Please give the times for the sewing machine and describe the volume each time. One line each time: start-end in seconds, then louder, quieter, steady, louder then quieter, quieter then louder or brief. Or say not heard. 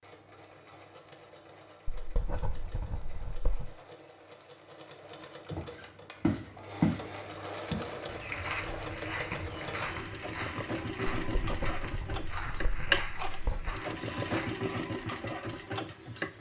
0.0-16.3 louder.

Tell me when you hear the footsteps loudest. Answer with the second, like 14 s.
7 s.